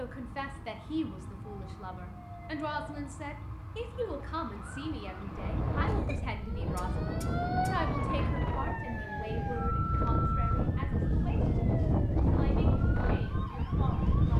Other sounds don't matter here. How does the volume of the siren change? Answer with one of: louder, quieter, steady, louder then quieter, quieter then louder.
louder then quieter.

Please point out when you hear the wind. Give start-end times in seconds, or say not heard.
5.2-14.3.